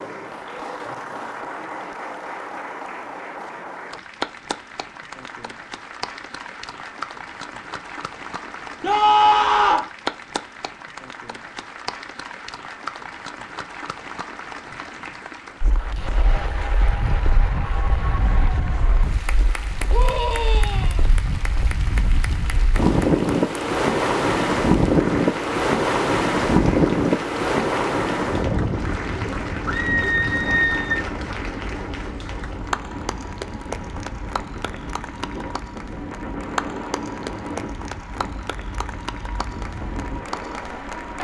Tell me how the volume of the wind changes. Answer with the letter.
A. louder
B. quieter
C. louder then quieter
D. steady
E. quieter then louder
C.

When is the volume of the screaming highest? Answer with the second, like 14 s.
9 s.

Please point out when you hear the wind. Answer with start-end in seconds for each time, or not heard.
15.6-41.1.